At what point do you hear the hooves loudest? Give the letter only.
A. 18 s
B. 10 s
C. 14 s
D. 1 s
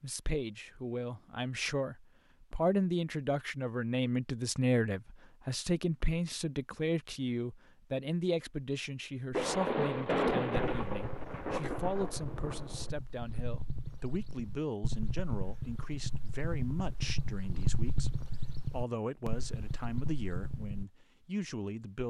A.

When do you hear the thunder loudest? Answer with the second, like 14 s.
10 s.